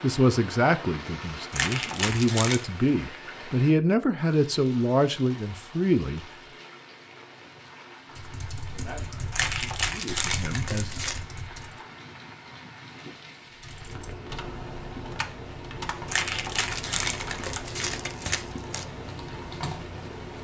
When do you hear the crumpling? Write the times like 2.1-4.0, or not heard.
1.5-2.7, 9.3-11.2, 16.1-18.9.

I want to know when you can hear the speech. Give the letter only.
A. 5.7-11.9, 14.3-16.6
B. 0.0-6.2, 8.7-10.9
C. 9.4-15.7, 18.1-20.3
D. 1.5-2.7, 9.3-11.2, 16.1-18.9
B.